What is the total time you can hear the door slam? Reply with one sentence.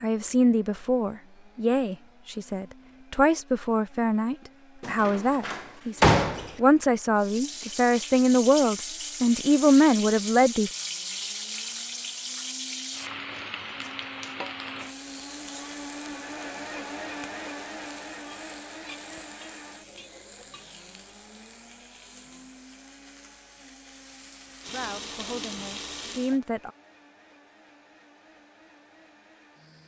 You can hear the door slam for 2 seconds altogether.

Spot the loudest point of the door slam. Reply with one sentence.
The volume of the door slam peaks at 6 seconds.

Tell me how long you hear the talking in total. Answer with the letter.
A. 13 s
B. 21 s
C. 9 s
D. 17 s
A.